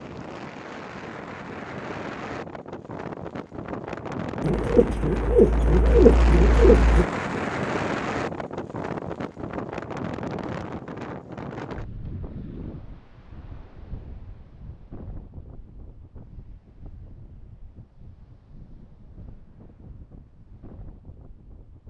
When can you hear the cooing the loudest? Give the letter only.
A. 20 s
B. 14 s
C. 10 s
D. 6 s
D.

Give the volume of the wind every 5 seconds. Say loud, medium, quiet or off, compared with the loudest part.
medium, loud, medium, quiet, quiet.